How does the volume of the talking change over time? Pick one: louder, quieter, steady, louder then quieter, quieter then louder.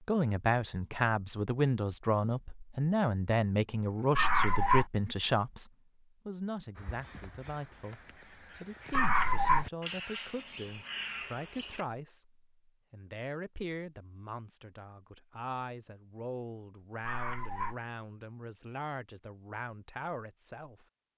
quieter.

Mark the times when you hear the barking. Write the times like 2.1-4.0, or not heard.
4.2-4.8, 8.9-9.7, 17.0-17.8.